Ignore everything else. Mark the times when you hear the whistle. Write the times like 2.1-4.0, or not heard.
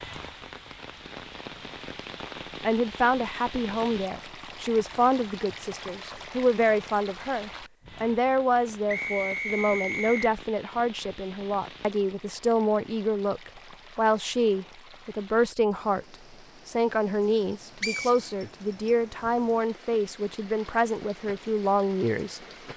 1.6-2.4, 8.8-10.3, 17.8-18.9.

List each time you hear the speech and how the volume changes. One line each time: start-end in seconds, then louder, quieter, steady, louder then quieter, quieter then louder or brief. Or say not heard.
2.6-22.7 steady.